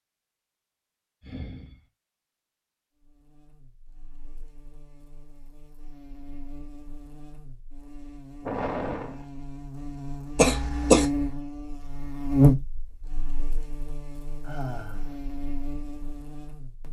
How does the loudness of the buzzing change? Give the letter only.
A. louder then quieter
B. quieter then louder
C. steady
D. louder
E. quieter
A.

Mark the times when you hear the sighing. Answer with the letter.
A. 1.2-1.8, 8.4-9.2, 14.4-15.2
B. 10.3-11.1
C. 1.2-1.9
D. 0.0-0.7
A.